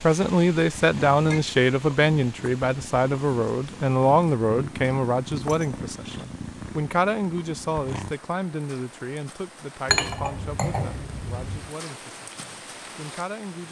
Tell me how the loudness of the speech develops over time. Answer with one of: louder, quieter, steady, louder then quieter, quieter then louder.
quieter.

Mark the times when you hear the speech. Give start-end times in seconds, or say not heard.
0.0-13.6.